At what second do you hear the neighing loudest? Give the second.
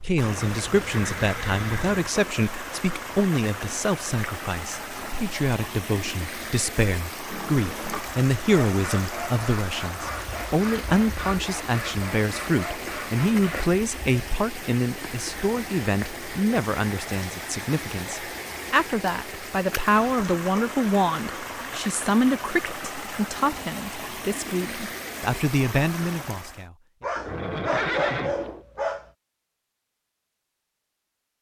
28 s.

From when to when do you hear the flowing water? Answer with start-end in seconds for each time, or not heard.
0.0-26.6.